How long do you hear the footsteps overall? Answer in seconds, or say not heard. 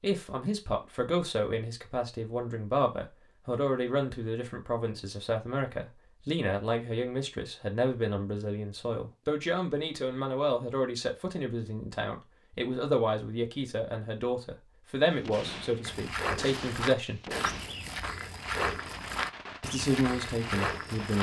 5 s.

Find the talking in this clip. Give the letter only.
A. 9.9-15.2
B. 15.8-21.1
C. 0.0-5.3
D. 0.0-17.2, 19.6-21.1
D.